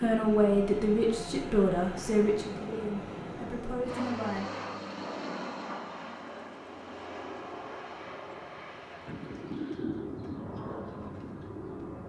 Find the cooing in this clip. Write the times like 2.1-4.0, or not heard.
9.1-11.9.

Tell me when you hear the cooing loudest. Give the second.
10 s.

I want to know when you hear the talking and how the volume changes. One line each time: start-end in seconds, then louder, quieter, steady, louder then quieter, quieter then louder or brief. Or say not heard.
0.0-4.5 quieter.